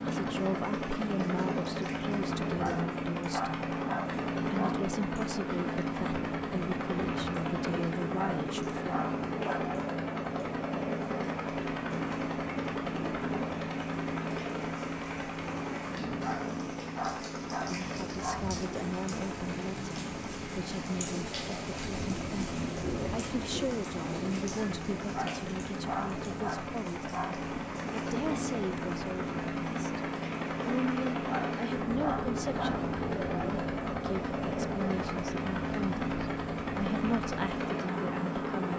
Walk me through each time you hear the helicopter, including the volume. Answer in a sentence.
The helicopter can be heard from 0.0 to 38.7 s, getting quieter then louder.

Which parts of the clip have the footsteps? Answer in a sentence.
You can't hear the footsteps here.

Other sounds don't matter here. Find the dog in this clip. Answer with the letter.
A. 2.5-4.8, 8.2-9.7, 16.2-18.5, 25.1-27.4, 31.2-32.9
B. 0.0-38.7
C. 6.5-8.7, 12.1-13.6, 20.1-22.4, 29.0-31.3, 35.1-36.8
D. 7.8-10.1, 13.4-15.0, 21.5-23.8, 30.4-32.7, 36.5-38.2
A.